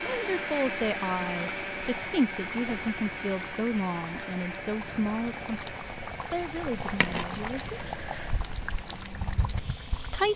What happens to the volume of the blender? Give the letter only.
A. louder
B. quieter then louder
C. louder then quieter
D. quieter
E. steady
D.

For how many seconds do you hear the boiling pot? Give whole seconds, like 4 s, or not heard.
10 s.